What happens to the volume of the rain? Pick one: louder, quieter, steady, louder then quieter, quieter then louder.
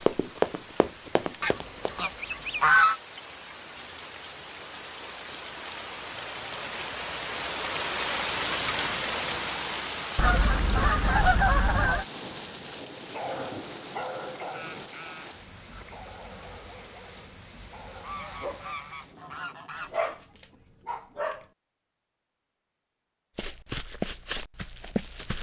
louder then quieter.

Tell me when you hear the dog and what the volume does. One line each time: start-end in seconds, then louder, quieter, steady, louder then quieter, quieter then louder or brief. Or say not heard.
13.1-21.4 quieter then louder.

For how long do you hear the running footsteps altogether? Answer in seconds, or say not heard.
4 s.